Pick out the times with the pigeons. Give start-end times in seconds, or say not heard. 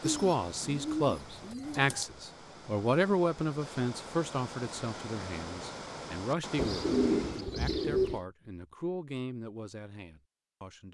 0.0-2.0, 6.5-8.2.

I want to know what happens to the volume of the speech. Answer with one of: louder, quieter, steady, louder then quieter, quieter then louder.
quieter.